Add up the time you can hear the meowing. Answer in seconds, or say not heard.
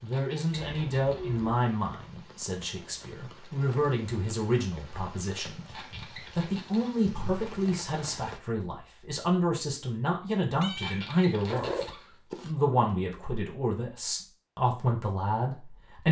3 s.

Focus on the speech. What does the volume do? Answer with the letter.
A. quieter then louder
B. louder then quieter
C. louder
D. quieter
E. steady
E.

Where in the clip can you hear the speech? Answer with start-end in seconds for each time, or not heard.
0.0-16.0.